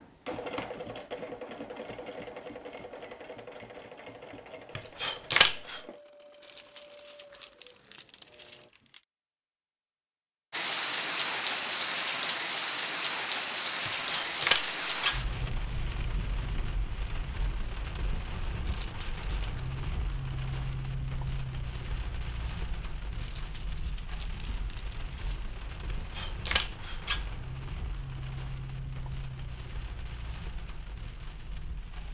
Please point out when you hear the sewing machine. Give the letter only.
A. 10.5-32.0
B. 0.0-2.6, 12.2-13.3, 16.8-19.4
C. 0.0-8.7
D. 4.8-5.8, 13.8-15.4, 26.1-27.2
C.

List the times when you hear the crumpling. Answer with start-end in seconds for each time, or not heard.
6.4-9.1, 18.6-19.7, 23.2-25.8.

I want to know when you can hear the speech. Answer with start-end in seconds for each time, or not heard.
not heard.